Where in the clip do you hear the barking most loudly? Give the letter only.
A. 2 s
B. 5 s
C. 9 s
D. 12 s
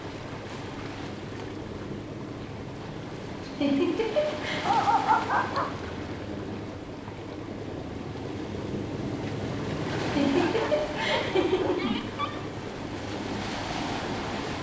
B.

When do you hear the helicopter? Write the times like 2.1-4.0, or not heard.
0.0-14.5.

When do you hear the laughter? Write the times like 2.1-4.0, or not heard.
3.4-4.7, 9.9-11.9.